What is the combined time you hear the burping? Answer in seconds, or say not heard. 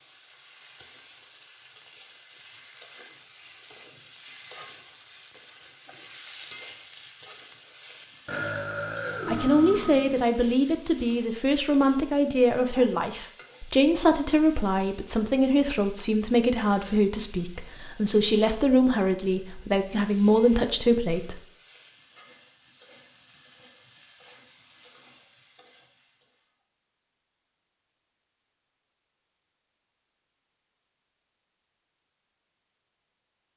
2 s.